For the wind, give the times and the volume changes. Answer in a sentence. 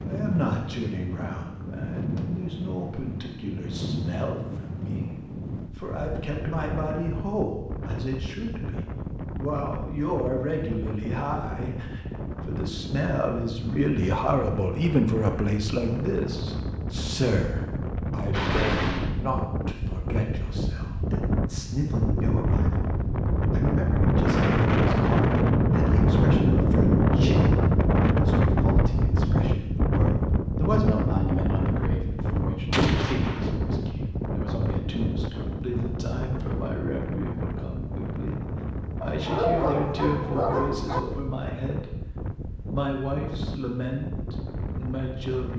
You can hear the wind from 0.0 to 45.5 s, getting louder then quieter.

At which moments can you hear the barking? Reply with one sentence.
You can hear the barking from 39.0 to 41.0 s.